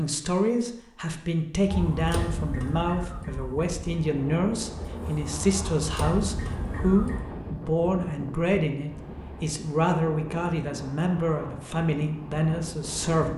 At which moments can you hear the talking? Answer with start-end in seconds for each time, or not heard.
0.0-13.3.